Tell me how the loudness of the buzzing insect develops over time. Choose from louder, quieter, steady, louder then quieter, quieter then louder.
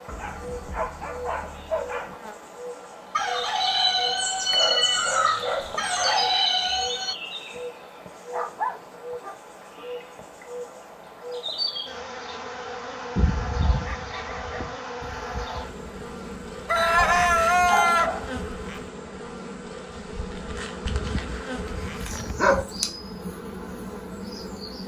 steady.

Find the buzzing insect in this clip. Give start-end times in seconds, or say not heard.
0.0-24.8.